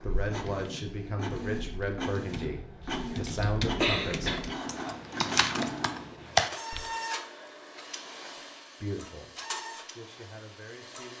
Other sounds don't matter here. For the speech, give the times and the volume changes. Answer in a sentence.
The speech can be heard from 0.0 to 4.3 s, getting quieter then louder; and briefly from 8.8 to 11.1 s.